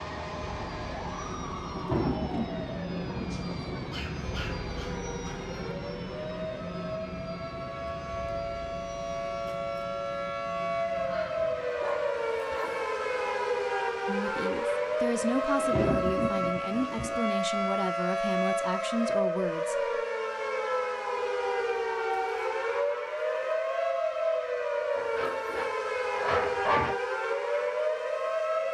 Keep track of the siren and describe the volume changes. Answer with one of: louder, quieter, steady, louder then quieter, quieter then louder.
louder.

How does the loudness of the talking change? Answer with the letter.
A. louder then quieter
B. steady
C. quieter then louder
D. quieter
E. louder
B.